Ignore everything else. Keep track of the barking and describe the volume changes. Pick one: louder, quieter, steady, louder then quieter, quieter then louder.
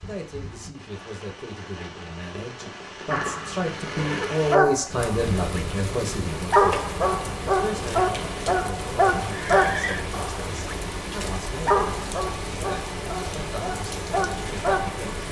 quieter.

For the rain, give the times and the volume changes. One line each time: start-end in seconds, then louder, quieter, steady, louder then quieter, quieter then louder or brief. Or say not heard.
0.0-15.2 louder.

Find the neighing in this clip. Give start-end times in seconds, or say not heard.
3.1-4.4, 9.3-10.1.